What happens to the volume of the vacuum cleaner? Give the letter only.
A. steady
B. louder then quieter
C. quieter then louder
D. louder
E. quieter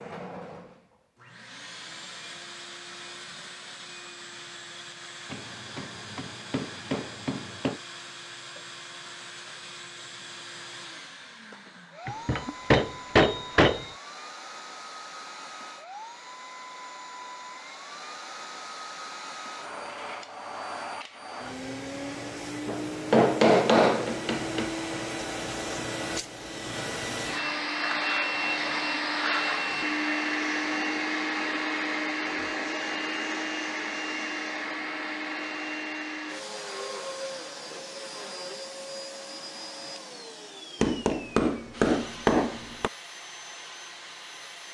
B.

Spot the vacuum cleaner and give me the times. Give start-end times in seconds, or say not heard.
0.0-44.6.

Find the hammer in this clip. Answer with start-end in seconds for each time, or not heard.
5.3-7.8, 12.1-13.9, 22.6-24.7, 40.8-42.9.